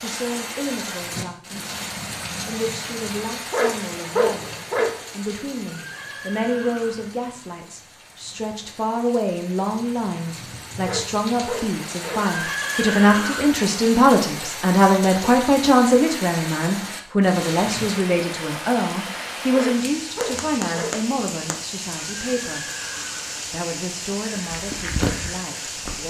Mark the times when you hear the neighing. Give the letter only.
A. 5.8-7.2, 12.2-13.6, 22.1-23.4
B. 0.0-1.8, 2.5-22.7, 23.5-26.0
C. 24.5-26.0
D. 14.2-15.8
A.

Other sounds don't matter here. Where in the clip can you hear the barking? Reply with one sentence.
You can hear the barking from 3.5 to 5.0 s, from 10.8 to 12.2 s and from 19.5 to 20.9 s.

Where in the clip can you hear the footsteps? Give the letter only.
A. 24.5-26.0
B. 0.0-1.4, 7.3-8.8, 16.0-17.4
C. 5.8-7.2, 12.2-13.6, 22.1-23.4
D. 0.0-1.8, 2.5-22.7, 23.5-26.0
A.